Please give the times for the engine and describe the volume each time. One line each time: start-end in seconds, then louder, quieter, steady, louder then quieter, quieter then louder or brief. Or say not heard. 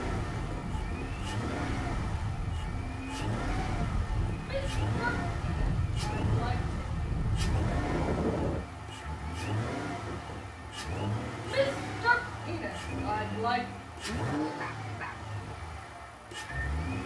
0.0-17.0 steady.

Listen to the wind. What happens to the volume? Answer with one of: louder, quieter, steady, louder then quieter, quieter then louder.
louder.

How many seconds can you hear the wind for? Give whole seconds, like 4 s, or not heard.
9 s.